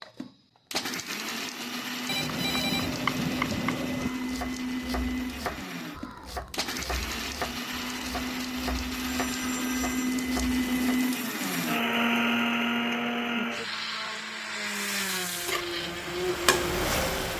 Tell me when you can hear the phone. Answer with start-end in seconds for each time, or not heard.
2.0-4.1, 8.9-10.2.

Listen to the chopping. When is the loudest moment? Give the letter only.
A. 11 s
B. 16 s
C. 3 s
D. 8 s
C.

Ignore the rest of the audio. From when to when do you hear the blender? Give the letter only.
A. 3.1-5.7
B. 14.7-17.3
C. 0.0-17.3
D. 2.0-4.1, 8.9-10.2
C.